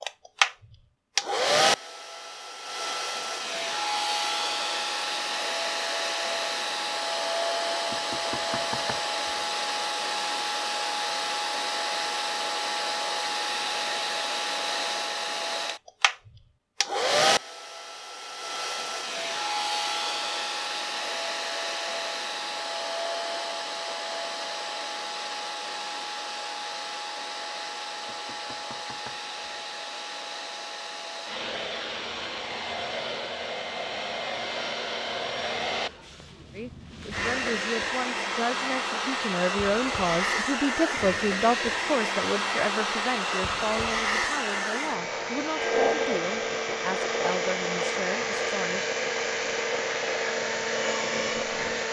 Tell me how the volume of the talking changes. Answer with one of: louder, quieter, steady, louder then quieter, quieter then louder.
louder then quieter.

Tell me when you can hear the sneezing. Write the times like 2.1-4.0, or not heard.
not heard.